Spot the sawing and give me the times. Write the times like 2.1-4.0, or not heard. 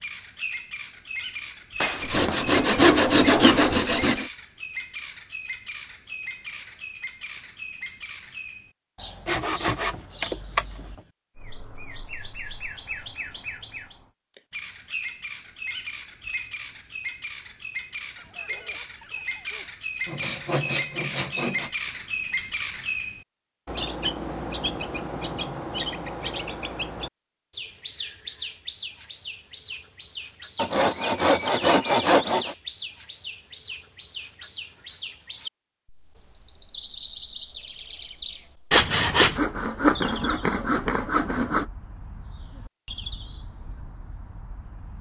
1.8-4.2, 9.2-10.7, 20.1-21.7, 30.6-32.5, 38.7-41.6.